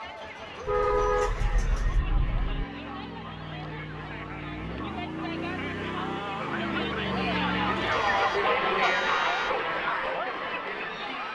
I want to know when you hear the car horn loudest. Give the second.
1 s.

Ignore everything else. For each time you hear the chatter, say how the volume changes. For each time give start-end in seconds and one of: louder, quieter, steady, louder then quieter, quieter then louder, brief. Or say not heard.
0.0-11.3 louder.